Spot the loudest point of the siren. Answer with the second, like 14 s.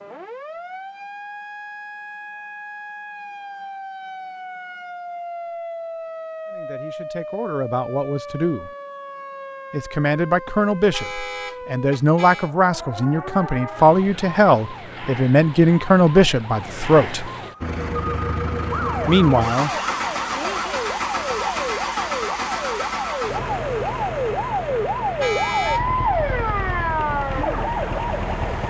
26 s.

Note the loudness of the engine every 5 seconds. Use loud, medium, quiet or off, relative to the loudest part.
off, off, off, loud, loud, medium.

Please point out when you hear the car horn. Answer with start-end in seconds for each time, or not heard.
10.8-12.5, 25.0-25.9.